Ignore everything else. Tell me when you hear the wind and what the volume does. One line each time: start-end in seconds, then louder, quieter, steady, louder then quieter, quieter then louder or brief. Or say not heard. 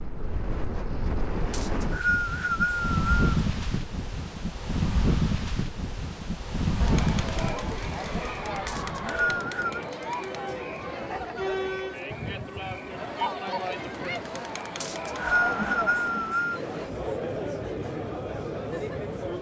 0.0-19.3 quieter.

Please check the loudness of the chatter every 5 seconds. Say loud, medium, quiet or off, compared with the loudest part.
off, loud, loud, loud.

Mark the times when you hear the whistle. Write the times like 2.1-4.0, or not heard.
1.5-3.2, 8.7-9.8, 14.8-16.6.